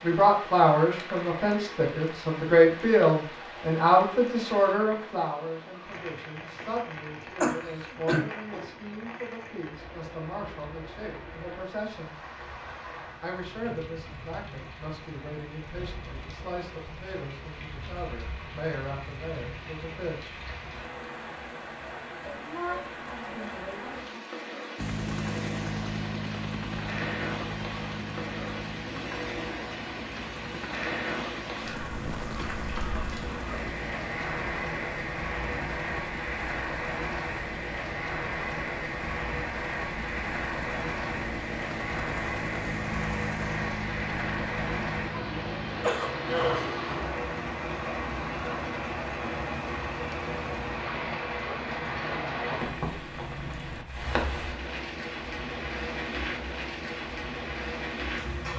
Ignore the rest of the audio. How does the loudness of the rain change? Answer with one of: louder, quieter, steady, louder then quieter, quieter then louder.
louder.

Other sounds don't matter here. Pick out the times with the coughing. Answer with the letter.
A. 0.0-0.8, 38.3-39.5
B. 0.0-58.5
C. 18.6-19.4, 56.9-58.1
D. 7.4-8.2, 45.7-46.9
D.